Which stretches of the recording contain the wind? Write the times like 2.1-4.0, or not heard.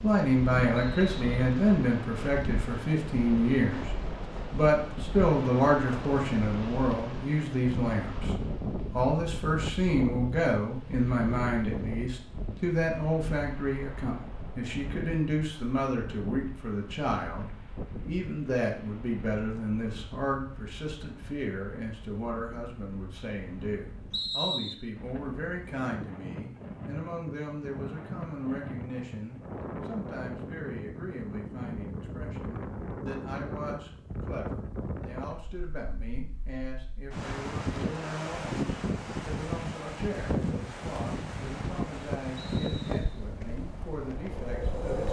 0.0-45.0.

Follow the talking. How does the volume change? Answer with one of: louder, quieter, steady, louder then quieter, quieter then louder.
quieter.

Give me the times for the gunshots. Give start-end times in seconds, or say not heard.
not heard.